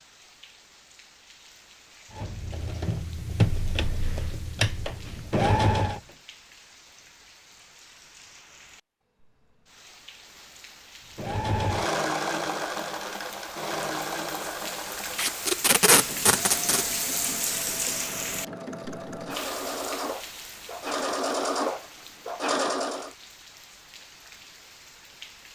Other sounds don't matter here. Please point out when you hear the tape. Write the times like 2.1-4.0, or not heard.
15.2-16.9.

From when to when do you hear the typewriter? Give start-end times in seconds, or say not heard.
not heard.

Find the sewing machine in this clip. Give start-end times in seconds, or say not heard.
2.1-6.0, 11.2-23.1.